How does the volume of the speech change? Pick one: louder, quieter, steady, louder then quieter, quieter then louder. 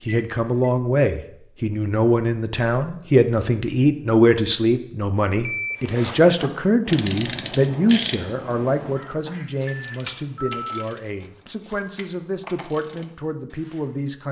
quieter.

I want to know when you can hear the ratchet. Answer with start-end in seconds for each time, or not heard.
6.4-13.9.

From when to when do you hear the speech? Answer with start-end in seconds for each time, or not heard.
0.0-14.2.